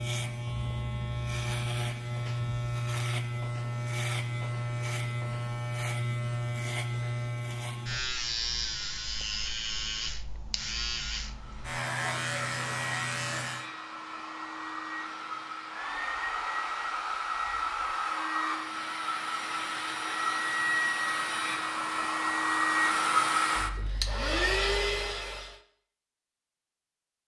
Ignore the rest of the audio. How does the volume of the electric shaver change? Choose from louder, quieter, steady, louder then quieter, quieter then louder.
steady.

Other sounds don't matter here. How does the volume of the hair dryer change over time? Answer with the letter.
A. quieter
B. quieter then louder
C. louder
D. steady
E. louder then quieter
C.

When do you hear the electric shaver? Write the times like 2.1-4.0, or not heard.
0.0-13.7.